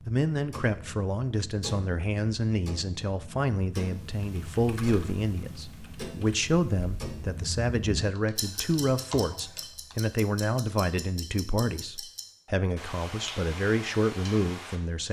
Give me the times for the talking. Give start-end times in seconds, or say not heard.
0.1-15.0.